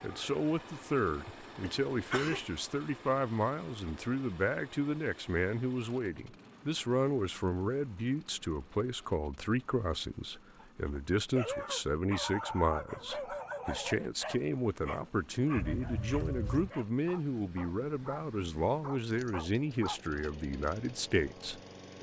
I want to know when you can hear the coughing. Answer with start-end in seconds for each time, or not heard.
1.6-2.4, 15.6-16.7.